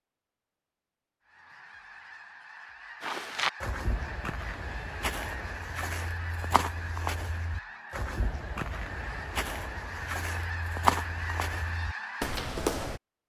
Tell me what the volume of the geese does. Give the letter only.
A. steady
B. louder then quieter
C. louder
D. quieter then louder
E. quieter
C.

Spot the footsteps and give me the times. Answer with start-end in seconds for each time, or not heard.
3.0-13.0.